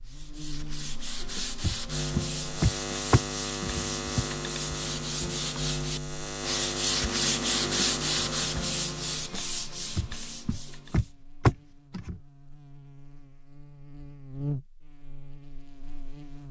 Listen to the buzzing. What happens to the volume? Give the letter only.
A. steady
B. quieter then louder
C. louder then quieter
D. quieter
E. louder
B.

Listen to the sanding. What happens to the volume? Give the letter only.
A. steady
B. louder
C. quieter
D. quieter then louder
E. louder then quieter
E.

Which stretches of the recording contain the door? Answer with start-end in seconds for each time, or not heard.
1.6-4.2, 9.9-12.2.